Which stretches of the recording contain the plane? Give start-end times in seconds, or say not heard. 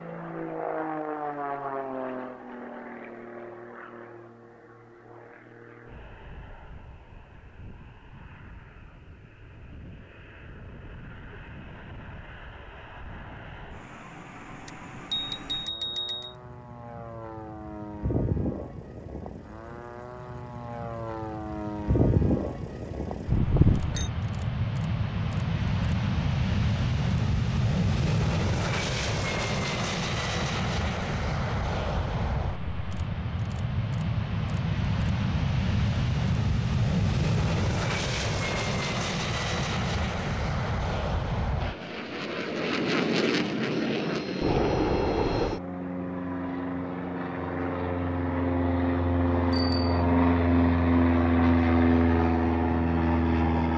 0.0-53.7.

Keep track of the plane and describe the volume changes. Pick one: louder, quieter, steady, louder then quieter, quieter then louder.
louder.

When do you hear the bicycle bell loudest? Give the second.
24 s.